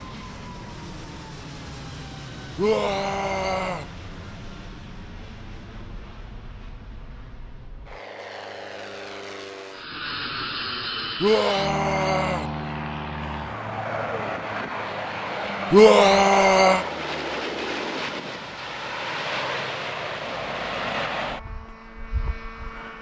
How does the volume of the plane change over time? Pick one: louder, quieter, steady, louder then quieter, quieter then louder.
louder.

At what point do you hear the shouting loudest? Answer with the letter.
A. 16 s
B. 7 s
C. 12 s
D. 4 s
A.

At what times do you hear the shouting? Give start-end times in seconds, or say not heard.
2.5-3.9, 11.2-12.5, 15.7-16.9.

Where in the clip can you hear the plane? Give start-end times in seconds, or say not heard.
0.0-22.9.